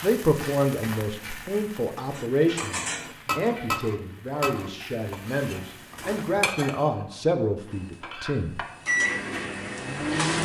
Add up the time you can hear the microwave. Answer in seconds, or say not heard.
3 s.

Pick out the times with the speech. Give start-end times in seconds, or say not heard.
0.0-8.6.